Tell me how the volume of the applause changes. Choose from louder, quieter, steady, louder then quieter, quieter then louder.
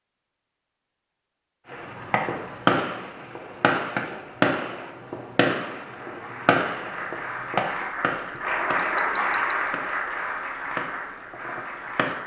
louder then quieter.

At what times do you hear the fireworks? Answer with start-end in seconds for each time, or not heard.
1.7-12.2.